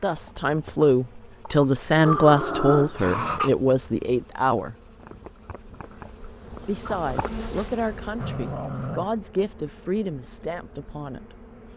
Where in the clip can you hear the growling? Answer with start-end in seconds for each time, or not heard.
2.0-3.5, 8.2-9.2.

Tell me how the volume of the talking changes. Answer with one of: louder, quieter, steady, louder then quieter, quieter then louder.
quieter.